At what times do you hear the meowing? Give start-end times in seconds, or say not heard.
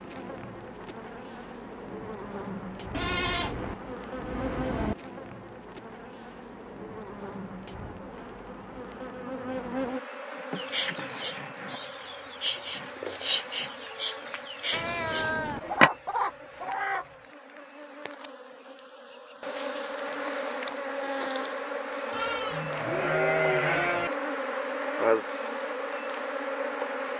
14.7-15.9.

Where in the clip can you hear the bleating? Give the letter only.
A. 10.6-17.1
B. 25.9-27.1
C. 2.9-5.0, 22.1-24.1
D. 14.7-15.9
C.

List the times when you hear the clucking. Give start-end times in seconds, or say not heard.
10.6-17.1.